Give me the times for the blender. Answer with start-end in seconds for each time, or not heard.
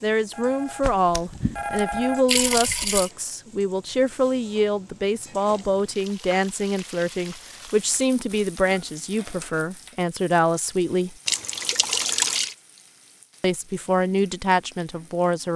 not heard.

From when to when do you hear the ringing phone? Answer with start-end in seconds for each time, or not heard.
0.3-2.2.